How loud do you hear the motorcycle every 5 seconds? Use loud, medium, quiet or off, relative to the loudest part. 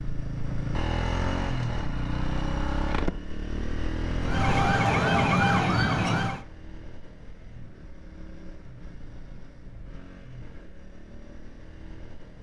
loud, quiet, quiet.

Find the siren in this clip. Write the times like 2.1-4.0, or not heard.
4.2-6.5.